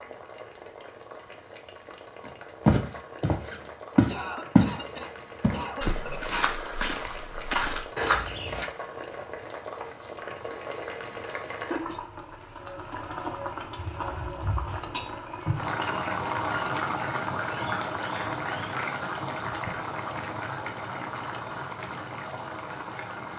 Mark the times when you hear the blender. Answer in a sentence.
The blender can't be heard in this clip.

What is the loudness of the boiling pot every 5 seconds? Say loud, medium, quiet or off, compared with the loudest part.
quiet, medium, medium, loud, medium.